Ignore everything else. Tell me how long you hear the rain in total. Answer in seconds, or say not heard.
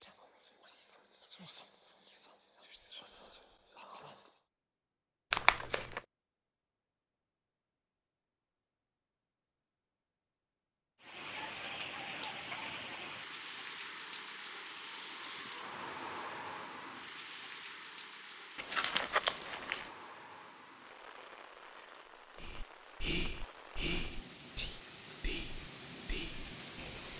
16 s.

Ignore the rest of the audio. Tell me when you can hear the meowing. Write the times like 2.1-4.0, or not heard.
not heard.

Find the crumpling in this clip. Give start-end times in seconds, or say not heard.
5.3-6.0, 18.6-19.9.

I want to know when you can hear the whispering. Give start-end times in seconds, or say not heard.
0.0-4.4, 22.4-27.1.